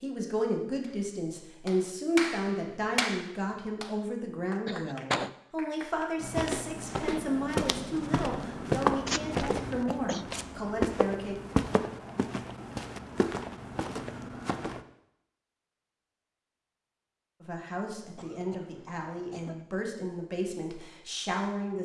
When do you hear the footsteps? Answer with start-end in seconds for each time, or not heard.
6.2-14.8.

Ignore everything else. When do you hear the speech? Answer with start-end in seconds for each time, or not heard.
0.0-11.3, 17.4-21.8.